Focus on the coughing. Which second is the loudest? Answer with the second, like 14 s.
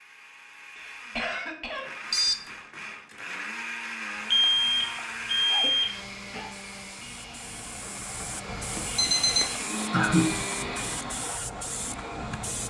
10 s.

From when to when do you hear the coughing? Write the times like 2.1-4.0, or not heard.
0.8-2.0, 4.3-6.5, 9.9-10.5.